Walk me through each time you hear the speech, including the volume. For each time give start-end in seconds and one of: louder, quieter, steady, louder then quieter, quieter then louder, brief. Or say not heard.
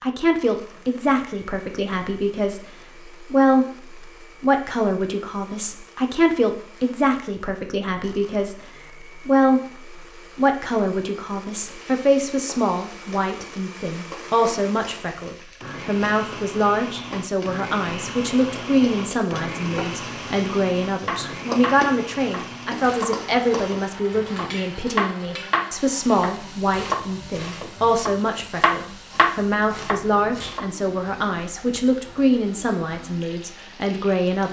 0.0-34.4 steady.